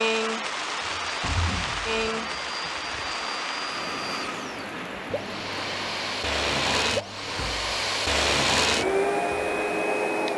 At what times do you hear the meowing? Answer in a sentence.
The meowing can't be heard in this clip.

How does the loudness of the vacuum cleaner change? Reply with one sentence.
The volume of the vacuum cleaner goes up.